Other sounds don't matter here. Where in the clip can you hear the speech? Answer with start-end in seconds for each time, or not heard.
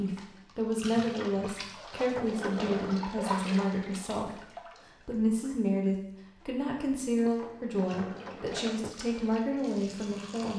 0.0-10.5.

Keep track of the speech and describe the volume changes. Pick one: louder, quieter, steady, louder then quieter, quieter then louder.
steady.